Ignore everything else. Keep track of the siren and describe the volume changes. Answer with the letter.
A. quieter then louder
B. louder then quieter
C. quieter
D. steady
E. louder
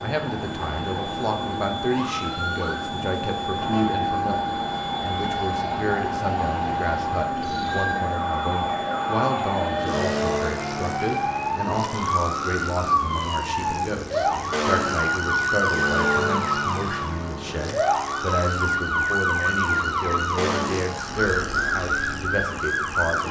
E.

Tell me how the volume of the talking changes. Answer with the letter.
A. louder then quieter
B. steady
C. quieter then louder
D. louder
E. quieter
B.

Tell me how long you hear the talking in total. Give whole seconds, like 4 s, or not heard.
23 s.